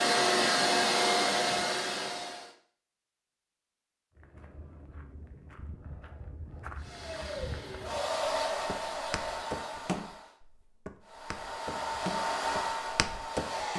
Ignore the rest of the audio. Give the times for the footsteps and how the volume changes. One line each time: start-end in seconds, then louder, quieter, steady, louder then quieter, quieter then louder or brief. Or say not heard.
4.2-13.7 louder.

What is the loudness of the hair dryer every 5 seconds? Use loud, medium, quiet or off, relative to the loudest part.
loud, medium, medium.